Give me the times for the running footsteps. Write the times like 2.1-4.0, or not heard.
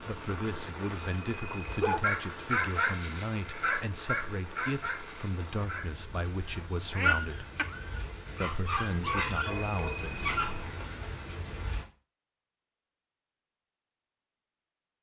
not heard.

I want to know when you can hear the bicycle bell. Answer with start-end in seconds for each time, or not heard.
0.8-1.9, 9.2-10.8.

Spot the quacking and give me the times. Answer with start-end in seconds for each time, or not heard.
6.9-8.1.